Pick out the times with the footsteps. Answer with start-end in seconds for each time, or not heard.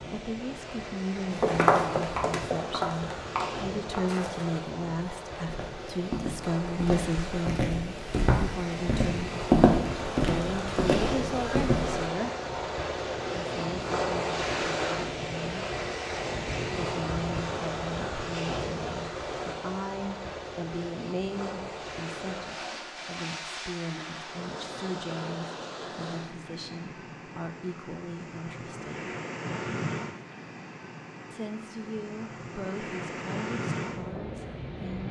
1.4-12.1.